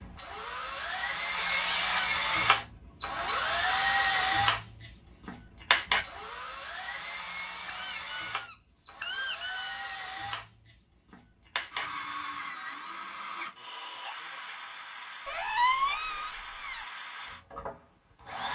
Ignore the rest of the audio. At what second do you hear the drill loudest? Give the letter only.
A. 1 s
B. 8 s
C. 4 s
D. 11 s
C.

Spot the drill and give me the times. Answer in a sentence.
The drill can be heard from 0.0 to 18.5 s.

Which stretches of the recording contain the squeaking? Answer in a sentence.
The squeaking can be heard from 1.4 to 2.0 s, from 7.5 to 9.9 s and from 15.2 to 16.9 s.